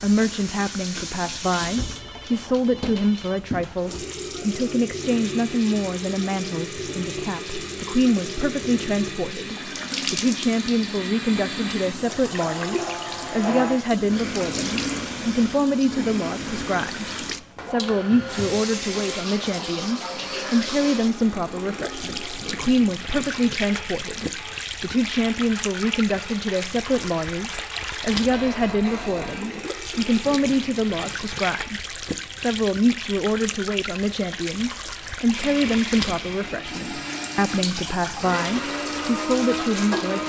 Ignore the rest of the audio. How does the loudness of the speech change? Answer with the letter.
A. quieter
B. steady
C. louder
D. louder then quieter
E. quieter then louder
B.